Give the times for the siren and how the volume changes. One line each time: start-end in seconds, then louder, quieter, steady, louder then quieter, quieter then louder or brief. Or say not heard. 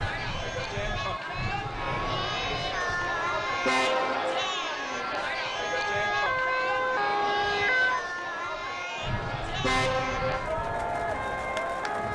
0.0-12.0 louder then quieter.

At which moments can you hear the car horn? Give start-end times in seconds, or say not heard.
3.6-4.5, 9.6-10.4.